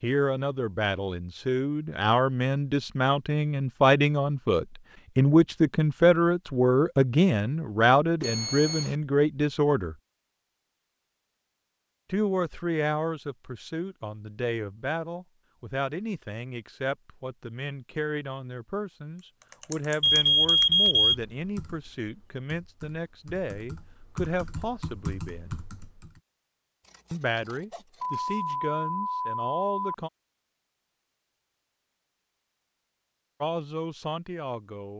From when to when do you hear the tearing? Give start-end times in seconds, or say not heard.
not heard.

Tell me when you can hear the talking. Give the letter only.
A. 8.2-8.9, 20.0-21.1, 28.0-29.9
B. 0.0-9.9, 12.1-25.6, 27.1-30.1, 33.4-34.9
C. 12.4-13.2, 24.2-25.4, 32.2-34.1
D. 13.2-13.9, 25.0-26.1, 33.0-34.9
B.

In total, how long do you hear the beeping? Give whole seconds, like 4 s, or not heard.
4 s.